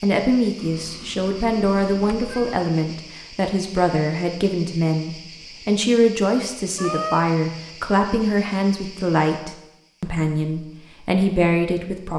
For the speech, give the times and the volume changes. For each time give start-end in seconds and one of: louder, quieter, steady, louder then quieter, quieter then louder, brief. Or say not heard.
0.0-12.1 steady.